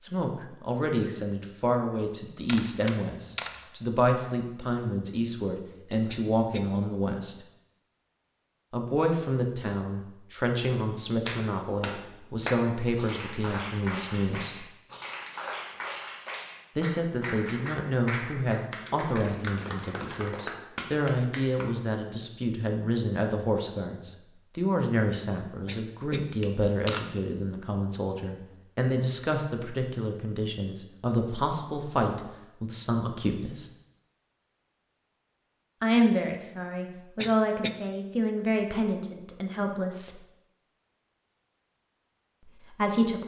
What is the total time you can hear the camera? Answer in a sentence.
The camera can be heard for 2 seconds in total.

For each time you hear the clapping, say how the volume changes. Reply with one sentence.
You can hear the clapping from 11.2 to 21.7 s, at a steady volume.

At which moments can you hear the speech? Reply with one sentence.
You can hear the speech from 0.0 to 7.3 s, from 8.7 to 14.7 s, from 16.8 to 33.7 s, from 35.8 to 40.2 s and from 42.5 to 43.2 s.